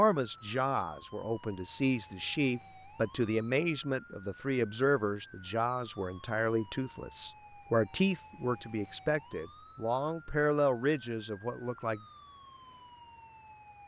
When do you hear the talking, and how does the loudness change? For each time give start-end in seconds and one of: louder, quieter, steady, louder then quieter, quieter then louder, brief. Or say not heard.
0.0-12.0 steady.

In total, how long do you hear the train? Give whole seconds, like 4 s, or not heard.
not heard.